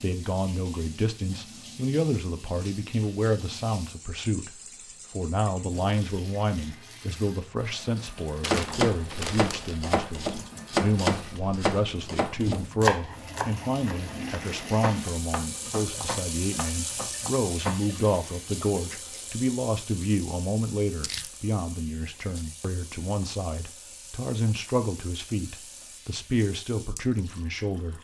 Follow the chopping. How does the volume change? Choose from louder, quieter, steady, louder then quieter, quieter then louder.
quieter.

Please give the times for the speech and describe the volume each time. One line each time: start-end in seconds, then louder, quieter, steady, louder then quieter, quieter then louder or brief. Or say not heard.
0.0-27.9 steady.